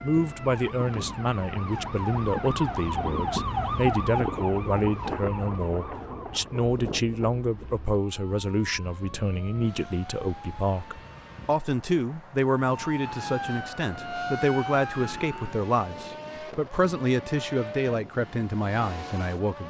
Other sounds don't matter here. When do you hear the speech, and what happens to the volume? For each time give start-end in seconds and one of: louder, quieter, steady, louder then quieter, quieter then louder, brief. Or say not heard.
0.0-19.6 steady.